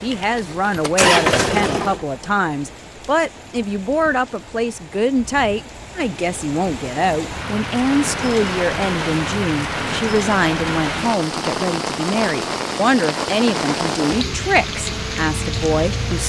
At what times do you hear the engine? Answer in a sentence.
You can hear the engine from 0.0 to 2.0 s and from 14.8 to 16.2 s.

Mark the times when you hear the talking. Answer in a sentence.
You can hear the talking from 0.0 to 16.2 s.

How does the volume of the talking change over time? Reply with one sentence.
The loudness of the talking stays about the same.